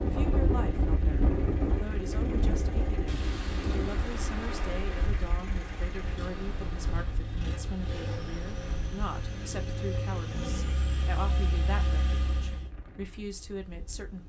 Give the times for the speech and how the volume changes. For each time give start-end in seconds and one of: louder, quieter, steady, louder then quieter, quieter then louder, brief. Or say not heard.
0.0-14.2 steady.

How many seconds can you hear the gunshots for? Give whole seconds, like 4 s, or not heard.
2 s.